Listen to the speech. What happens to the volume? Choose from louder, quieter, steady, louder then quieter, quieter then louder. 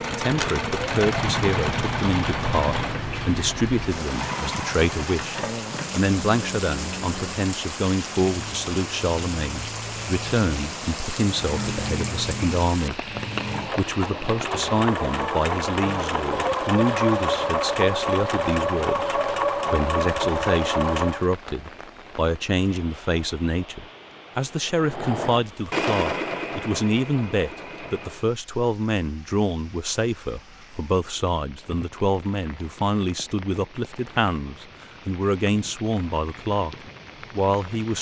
steady.